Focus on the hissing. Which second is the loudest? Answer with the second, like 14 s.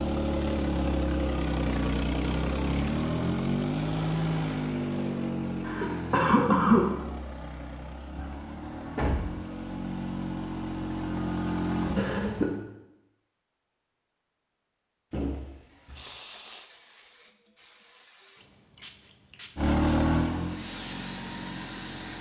21 s.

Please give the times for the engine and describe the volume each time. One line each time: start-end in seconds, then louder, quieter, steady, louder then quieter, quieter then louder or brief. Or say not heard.
0.0-12.0 quieter then louder
19.6-22.1 brief.